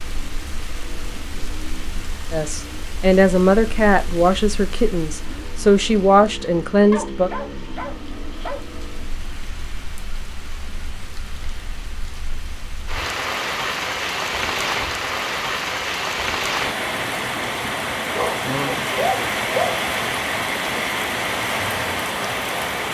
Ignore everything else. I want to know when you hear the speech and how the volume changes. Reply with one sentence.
The speech can be heard from 2.3 to 7.3 s, getting quieter then louder.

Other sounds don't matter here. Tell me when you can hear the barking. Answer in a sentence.
The barking can be heard from 6.9 to 8.7 s and from 18.1 to 19.8 s.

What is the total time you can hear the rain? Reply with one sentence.
You can hear the rain for 23 seconds altogether.